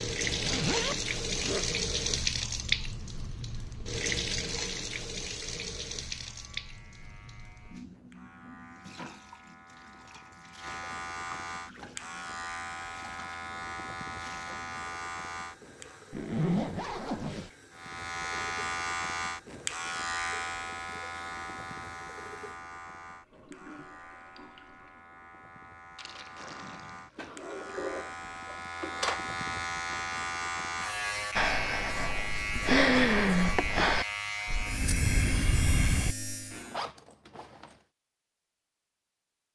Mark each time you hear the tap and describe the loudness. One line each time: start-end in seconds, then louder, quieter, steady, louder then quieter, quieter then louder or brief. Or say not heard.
0.0-28.5 quieter.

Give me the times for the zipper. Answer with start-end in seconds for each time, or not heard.
0.2-1.6, 16.1-17.5, 36.7-37.8.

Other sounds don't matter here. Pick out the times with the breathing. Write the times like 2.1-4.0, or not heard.
31.4-36.1.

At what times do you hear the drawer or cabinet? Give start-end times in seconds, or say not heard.
27.1-29.2.